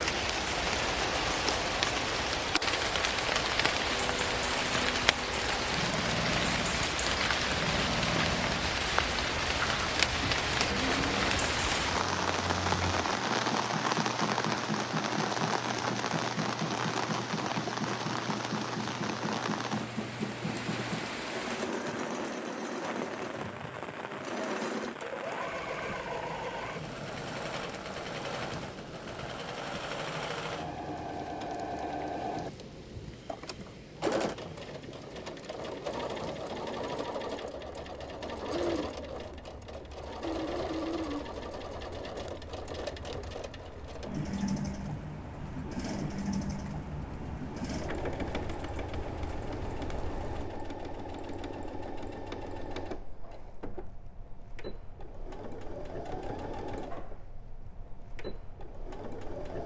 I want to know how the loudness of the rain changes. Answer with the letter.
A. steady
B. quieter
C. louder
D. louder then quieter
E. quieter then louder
B.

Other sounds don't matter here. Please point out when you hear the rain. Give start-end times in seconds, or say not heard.
0.0-50.5.